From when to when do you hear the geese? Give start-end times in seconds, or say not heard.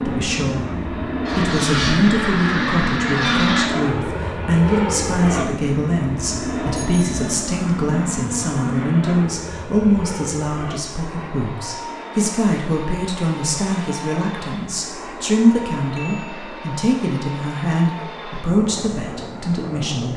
1.2-3.7.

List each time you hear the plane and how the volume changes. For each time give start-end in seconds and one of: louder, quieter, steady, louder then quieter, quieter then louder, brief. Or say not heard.
0.0-20.1 quieter.